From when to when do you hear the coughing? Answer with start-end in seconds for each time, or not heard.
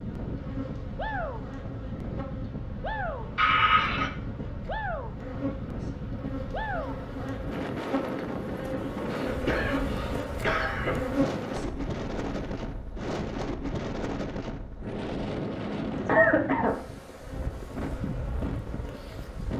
3.4-4.1, 9.1-11.1, 16.1-16.8.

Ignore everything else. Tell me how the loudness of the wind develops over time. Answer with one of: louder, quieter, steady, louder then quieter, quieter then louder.
steady.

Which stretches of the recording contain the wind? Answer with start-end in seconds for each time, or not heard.
0.0-19.5.